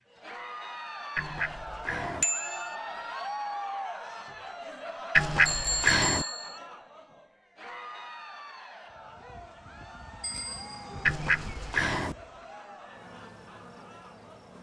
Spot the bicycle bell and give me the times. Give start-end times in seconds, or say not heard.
2.2-2.8, 5.5-6.6, 10.2-11.1.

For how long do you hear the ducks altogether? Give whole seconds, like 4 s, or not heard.
3 s.